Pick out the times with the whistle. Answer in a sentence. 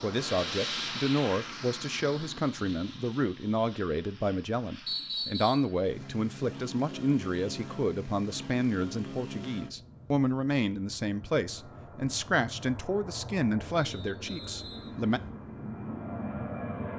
You can hear the whistle from 4.8 to 5.7 s and from 13.8 to 15.2 s.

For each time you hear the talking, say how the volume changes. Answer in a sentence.
You can hear the talking from 0.0 to 15.2 s, at a steady volume.